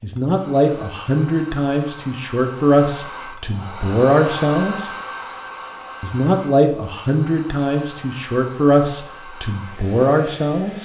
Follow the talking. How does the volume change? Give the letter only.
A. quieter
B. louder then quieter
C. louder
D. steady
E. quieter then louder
D.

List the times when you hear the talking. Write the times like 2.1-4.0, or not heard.
0.0-4.9, 6.0-10.8.